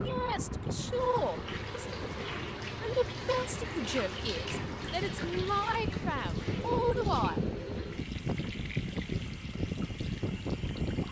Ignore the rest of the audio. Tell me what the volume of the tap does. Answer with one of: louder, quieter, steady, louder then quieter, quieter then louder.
quieter.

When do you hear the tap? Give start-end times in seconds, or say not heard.
0.0-11.0.